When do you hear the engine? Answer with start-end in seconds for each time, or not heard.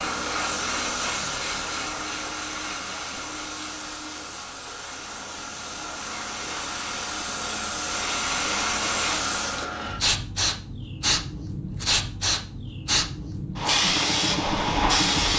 13.8-15.3.